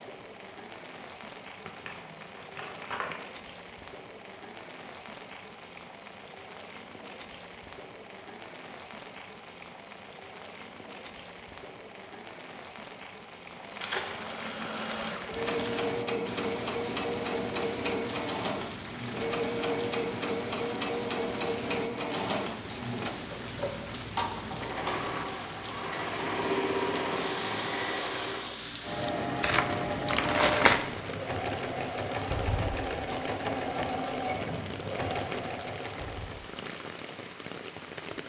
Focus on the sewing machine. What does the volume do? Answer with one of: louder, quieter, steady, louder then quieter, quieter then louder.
steady.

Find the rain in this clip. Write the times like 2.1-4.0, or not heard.
0.0-38.2.